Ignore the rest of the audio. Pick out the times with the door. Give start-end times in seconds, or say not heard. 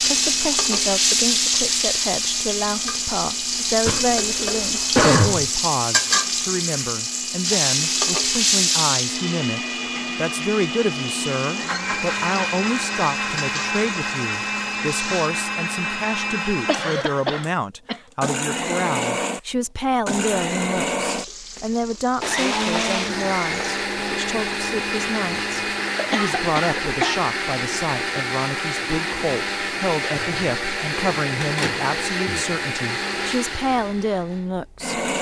31.4-32.5.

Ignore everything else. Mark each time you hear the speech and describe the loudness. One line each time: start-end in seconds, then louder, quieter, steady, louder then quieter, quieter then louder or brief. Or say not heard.
0.0-35.0 steady.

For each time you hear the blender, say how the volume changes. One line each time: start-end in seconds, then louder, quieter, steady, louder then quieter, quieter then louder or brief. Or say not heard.
0.0-35.1 louder.